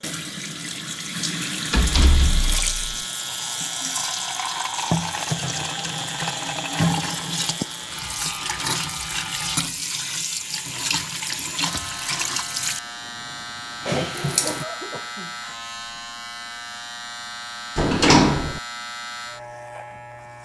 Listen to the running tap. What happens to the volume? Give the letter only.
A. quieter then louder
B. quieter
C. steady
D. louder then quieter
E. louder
C.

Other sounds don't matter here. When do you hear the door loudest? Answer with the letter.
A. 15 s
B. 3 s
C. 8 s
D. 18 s
D.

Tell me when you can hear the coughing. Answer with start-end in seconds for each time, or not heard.
14.4-15.6.